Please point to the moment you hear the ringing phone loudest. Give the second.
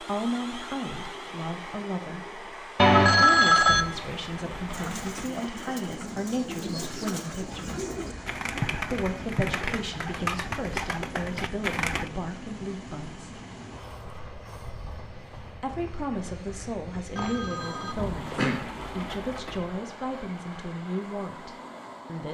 3 s.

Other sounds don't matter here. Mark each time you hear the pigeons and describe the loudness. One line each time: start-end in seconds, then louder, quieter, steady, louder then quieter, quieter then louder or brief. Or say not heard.
4.7-12.1 louder.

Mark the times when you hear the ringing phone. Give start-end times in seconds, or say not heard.
2.8-3.9, 7.7-9.6, 17.1-18.7.